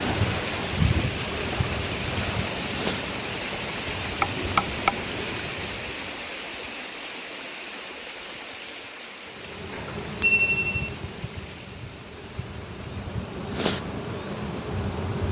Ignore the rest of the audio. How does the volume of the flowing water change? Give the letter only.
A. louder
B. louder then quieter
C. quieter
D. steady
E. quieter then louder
C.